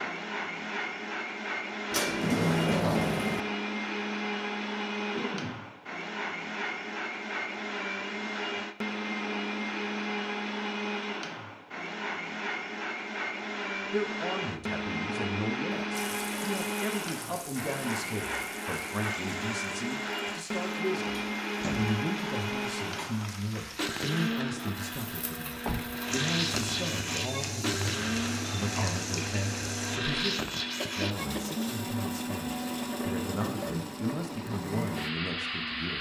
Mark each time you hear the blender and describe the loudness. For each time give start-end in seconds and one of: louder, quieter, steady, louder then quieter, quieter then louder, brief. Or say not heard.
0.0-35.9 steady.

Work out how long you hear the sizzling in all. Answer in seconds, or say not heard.
14 s.